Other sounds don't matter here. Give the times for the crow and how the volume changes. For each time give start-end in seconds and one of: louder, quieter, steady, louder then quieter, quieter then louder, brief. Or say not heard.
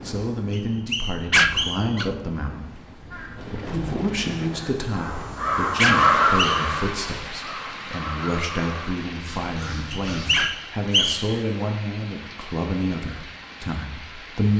3.1-10.5 louder then quieter.